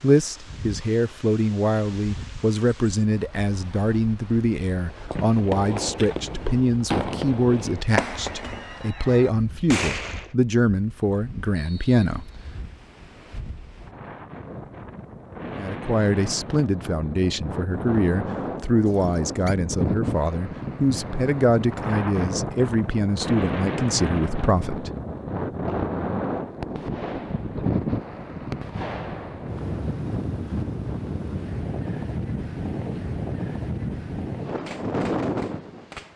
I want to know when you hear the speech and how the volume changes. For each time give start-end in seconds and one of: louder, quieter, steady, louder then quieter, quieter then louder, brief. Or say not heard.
0.0-12.3 steady
15.6-24.9 steady.